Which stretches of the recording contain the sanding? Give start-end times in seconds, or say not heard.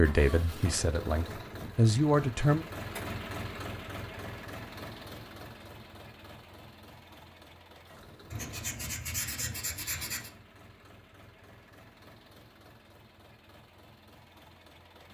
8.3-10.3.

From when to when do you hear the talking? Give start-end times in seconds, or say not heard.
0.0-2.6.